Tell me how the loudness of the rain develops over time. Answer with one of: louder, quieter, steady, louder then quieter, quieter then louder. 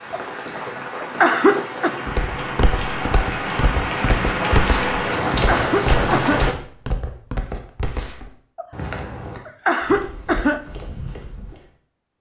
louder.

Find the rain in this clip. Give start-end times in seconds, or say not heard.
0.0-6.5.